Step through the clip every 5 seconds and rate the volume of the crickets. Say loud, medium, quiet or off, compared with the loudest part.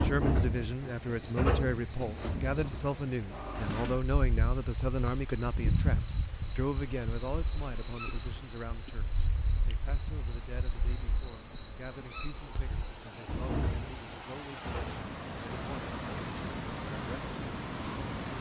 loud, loud, medium, quiet.